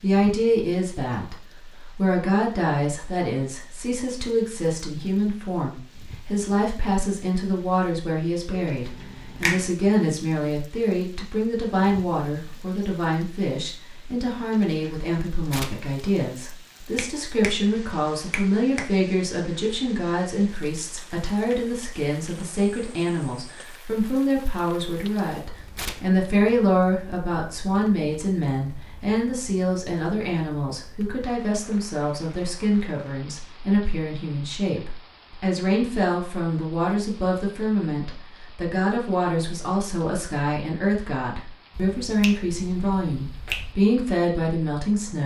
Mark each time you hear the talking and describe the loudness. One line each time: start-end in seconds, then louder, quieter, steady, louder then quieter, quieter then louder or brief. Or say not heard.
0.0-45.2 steady.